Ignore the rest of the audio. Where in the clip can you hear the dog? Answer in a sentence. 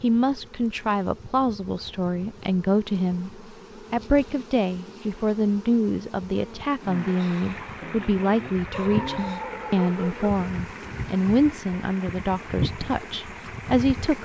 The dog can be heard from 8.7 to 10.4 s.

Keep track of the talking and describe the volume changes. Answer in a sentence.
The loudness of the talking stays about the same.